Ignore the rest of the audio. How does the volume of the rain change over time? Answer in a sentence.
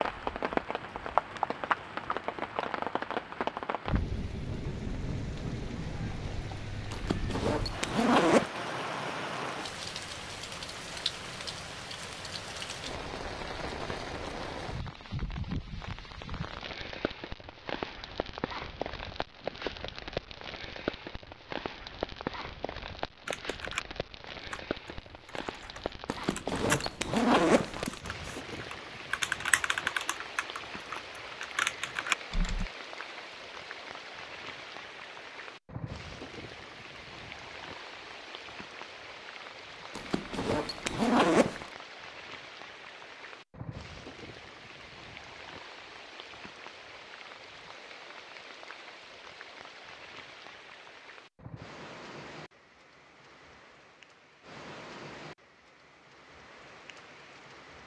The volume of the rain goes down.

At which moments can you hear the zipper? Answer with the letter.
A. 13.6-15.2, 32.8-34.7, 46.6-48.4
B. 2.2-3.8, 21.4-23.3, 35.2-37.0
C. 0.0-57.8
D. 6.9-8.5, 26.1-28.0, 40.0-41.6
D.